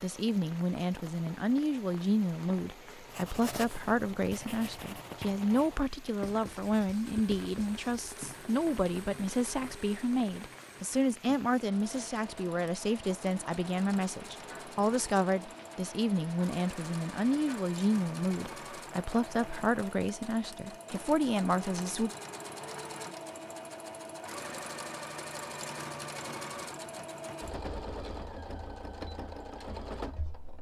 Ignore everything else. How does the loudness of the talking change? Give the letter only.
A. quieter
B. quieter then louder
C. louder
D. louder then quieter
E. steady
E.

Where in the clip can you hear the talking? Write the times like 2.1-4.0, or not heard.
0.0-22.1.